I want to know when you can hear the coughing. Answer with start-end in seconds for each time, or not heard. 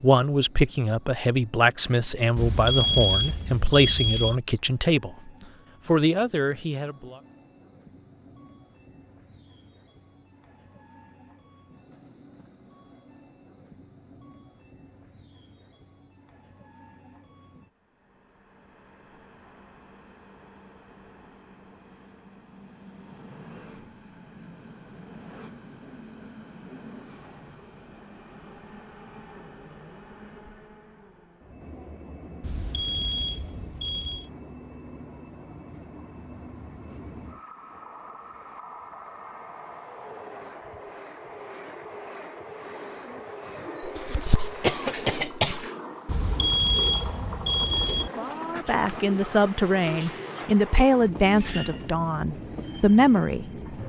43.8-45.6.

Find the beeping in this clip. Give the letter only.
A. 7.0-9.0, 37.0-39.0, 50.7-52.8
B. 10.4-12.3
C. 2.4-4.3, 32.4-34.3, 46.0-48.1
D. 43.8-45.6
C.